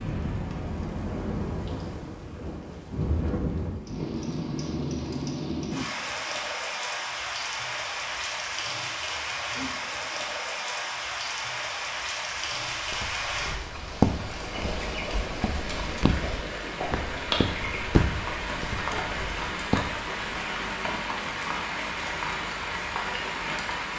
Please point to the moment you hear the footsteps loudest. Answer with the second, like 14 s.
14 s.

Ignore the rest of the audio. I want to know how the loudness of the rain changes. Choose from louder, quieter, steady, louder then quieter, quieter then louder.
steady.